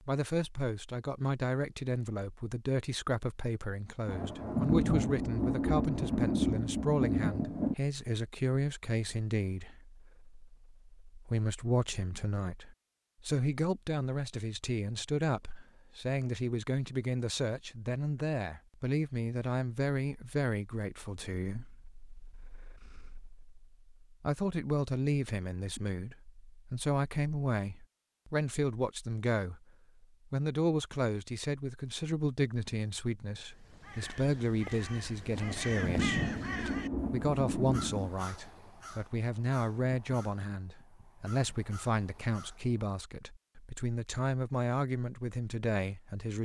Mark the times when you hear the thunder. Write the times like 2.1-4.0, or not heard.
4.0-7.8, 35.4-38.1.